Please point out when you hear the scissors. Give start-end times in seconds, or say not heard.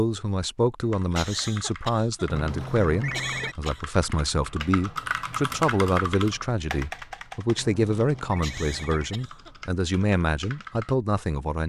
not heard.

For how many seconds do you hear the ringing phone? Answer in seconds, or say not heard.
3 s.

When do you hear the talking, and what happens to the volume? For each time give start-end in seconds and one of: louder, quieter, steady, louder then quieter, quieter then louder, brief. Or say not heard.
0.0-11.6 steady.